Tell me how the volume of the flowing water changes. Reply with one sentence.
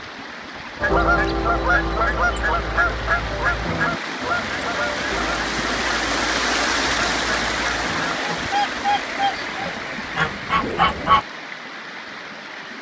The loudness of the flowing water goes up, then down.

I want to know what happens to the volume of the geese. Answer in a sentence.
The volume of the geese goes down, then up.